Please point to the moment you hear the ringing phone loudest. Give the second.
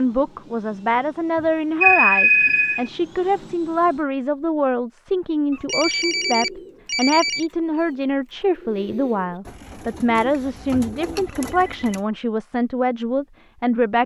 2 s.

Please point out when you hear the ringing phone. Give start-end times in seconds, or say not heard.
1.8-2.9, 5.5-7.5, 11.4-12.0.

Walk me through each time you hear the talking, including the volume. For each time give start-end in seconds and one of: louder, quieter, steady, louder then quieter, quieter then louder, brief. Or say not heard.
0.0-14.0 steady.